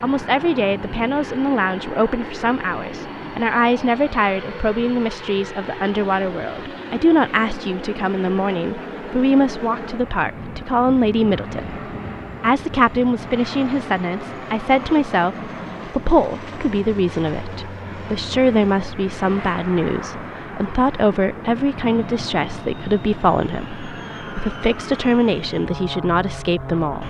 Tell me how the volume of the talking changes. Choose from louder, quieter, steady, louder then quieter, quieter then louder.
steady.